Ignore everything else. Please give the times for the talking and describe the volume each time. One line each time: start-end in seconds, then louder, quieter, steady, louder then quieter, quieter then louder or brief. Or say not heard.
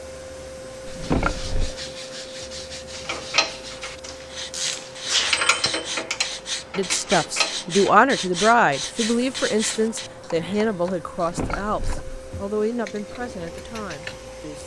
6.8-14.6 quieter.